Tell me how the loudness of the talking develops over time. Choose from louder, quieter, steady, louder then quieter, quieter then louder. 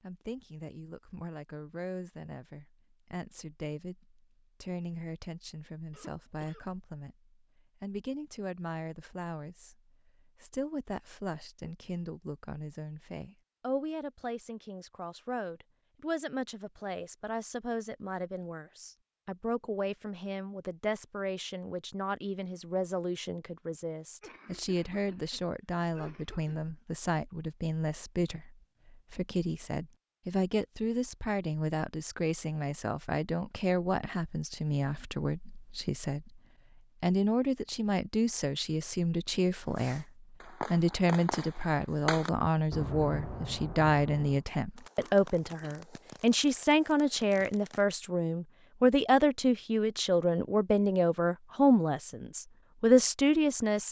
louder.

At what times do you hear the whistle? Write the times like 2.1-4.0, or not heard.
not heard.